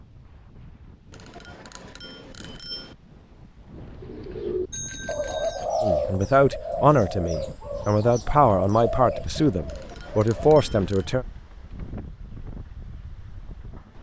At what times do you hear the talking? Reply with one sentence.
The talking can be heard from 5.8 to 11.2 s.